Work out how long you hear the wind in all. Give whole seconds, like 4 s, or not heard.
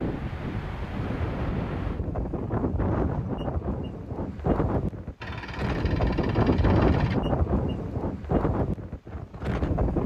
10 s.